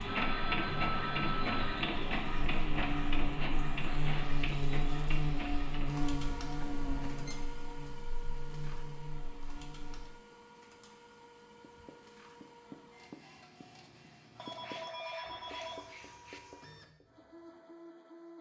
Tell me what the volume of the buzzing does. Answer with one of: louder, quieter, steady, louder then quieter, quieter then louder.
louder then quieter.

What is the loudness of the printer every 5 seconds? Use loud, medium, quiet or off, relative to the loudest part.
loud, medium, quiet, quiet.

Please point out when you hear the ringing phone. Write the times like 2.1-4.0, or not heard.
0.1-1.9, 6.6-7.4, 14.3-16.4.